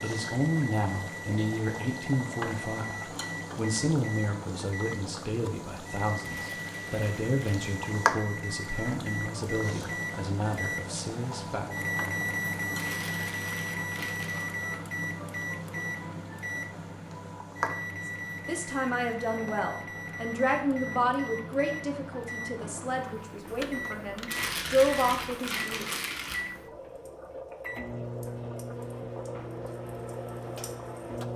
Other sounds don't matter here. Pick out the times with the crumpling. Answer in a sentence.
You can hear the crumpling from 6.2 to 7.7 s, from 12.8 to 14.4 s and from 24.2 to 26.4 s.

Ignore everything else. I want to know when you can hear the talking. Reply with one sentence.
You can hear the talking from 0.0 to 11.7 s and from 18.1 to 25.9 s.